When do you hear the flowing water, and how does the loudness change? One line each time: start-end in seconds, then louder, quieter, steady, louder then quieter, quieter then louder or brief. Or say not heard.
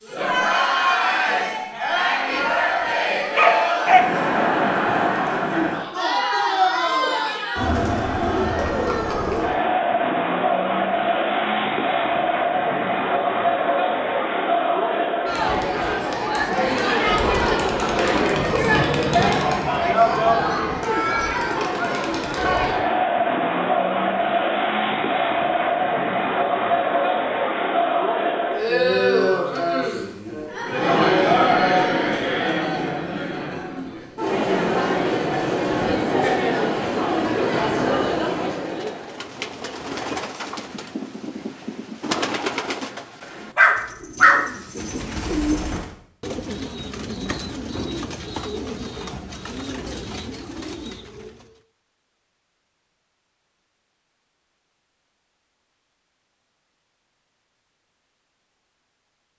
not heard.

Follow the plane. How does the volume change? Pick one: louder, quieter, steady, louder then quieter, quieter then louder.
quieter.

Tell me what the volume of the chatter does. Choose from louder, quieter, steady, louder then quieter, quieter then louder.
steady.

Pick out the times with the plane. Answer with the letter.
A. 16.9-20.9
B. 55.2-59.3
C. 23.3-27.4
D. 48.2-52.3
A.